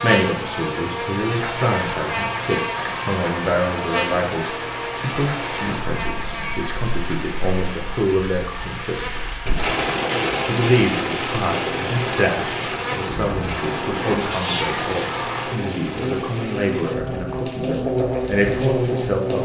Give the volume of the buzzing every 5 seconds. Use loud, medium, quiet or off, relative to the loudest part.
loud, medium, medium, loud.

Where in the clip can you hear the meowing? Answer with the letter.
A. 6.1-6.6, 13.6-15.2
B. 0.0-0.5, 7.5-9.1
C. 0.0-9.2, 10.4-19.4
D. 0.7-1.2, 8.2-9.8
A.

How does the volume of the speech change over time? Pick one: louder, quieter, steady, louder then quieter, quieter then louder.
steady.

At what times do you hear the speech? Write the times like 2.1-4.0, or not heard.
0.0-9.2, 10.4-19.4.